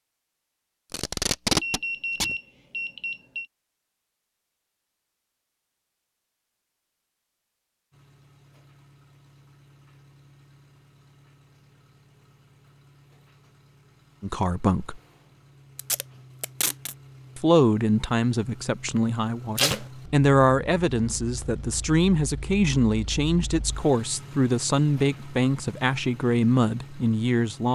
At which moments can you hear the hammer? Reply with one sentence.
The hammer can't be heard in this clip.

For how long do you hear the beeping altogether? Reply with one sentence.
The beeping can be heard for 2 seconds in total.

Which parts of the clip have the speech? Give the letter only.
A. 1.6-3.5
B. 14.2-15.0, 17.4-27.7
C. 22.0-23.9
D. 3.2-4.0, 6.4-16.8
B.